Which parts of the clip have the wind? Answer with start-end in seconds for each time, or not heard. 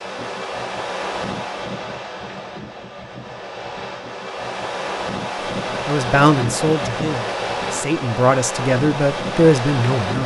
0.0-10.2.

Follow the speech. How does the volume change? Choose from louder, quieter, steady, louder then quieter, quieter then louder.
quieter then louder.